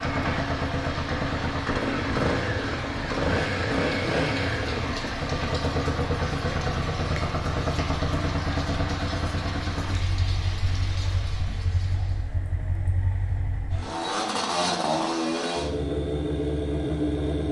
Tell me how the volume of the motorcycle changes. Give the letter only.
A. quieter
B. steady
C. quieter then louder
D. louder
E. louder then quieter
C.